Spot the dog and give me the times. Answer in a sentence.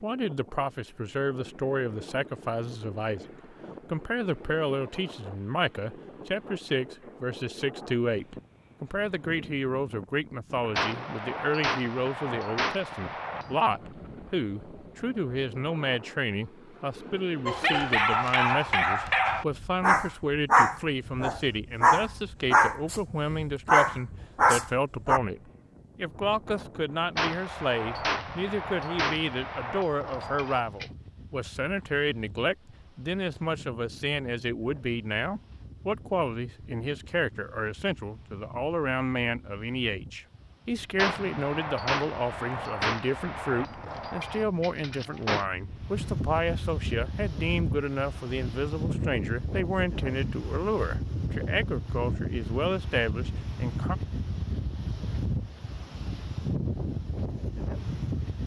You can hear the dog from 17.4 to 25.2 s.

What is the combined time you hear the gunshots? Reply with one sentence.
The gunshots can be heard for 11 seconds in total.